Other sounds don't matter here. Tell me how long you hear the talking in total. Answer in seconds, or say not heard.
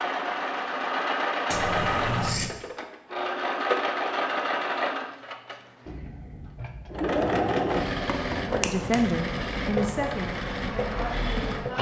3 s.